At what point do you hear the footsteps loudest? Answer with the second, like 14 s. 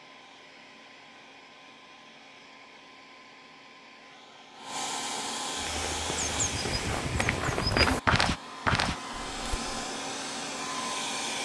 8 s.